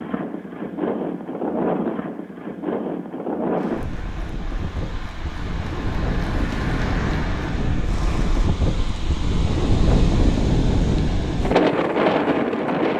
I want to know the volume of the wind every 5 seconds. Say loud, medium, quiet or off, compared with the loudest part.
medium, medium, loud.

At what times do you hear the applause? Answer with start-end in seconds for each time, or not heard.
3.5-8.5.